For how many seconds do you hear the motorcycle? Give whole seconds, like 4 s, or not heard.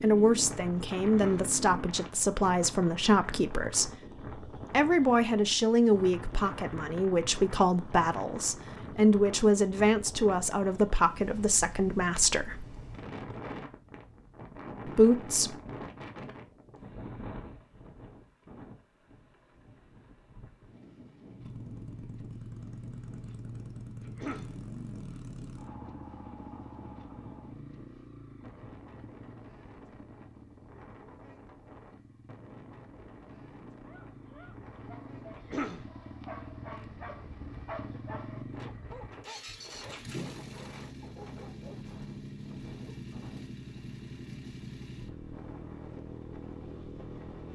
28 s.